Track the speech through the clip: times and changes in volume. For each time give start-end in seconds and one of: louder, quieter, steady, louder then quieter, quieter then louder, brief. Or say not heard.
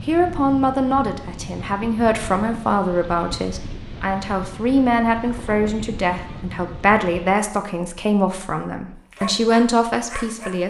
0.1-10.6 steady.